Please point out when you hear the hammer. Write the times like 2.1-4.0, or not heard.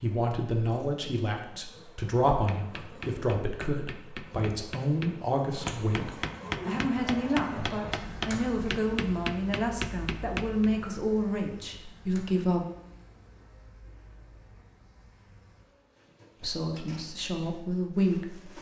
2.3-10.7.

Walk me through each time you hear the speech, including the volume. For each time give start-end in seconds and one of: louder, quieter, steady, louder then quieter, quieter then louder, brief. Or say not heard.
0.0-12.7 steady
16.4-18.5 brief.